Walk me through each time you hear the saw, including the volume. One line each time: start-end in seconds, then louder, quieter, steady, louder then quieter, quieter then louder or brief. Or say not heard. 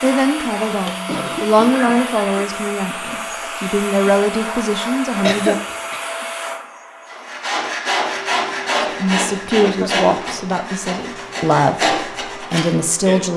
7.0-13.2 quieter then louder.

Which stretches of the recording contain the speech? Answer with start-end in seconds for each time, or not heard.
0.0-5.5, 8.8-13.3.